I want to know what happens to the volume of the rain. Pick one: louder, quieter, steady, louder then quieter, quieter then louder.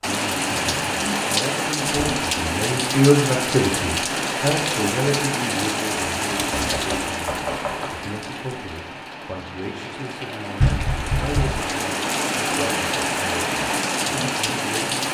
quieter then louder.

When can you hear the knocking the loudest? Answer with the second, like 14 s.
11 s.